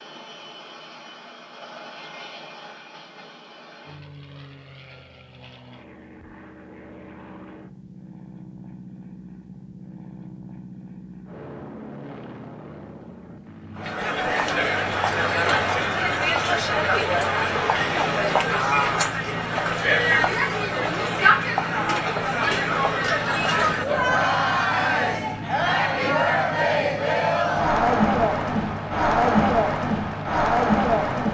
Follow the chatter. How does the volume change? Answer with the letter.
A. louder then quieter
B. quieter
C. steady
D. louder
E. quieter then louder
C.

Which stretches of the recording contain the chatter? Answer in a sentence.
The chatter can be heard from 13.8 to 31.2 s.